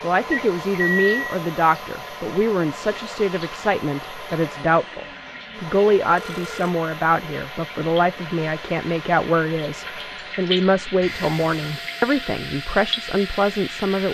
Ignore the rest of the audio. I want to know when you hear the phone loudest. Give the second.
1 s.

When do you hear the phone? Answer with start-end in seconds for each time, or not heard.
0.3-1.4, 6.2-6.7, 11.0-11.6.